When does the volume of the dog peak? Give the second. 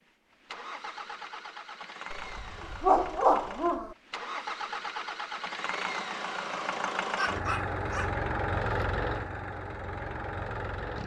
3 s.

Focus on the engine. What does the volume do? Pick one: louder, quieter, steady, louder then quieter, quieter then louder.
louder.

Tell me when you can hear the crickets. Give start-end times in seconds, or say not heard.
not heard.